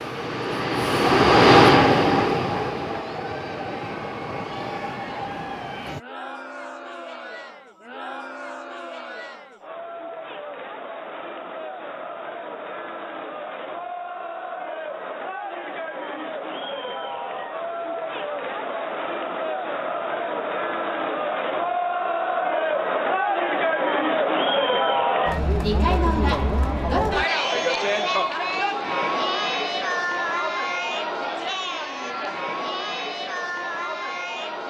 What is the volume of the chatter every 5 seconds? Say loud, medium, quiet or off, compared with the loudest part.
quiet, quiet, medium, medium, loud, loud, medium.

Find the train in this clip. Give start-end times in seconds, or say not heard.
0.0-6.0.